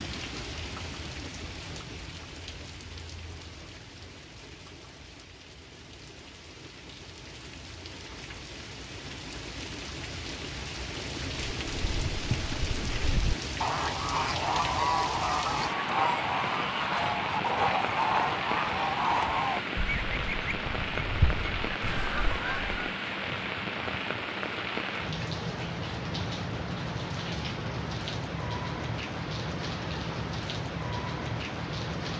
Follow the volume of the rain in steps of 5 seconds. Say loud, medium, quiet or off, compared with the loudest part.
medium, medium, loud, loud, loud, loud, loud.